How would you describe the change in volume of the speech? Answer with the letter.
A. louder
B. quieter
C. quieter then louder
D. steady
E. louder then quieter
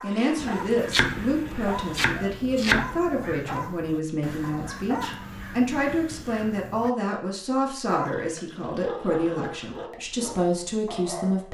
D.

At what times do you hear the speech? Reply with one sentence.
You can hear the speech from 0.0 to 11.4 s.